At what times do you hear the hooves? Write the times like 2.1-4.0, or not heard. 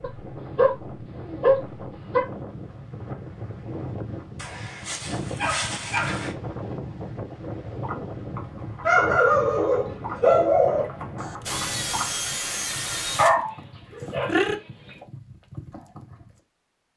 7.8-16.3.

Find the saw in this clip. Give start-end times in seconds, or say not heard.
11.2-13.3.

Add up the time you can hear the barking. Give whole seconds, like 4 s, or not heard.
8 s.